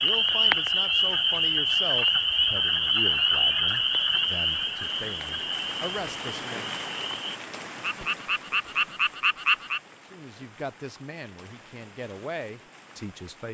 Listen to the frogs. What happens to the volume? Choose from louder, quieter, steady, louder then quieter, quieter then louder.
quieter then louder.